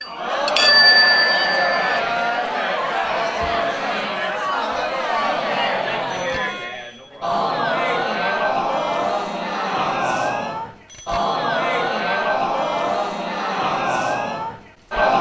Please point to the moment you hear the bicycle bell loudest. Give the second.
1 s.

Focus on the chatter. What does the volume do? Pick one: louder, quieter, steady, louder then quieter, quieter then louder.
steady.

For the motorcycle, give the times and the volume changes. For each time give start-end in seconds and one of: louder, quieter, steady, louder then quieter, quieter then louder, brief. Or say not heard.
not heard.